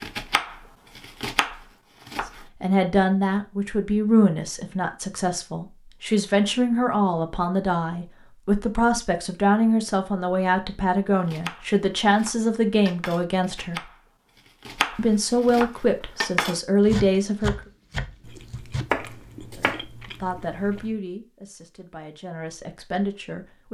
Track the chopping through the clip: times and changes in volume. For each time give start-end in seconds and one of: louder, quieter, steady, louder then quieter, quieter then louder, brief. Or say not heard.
0.0-2.5 brief
11.2-19.9 louder.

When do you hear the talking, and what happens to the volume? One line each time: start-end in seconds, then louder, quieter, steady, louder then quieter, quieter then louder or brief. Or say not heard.
2.6-13.8 steady
14.9-17.6 brief
19.6-23.6 quieter then louder.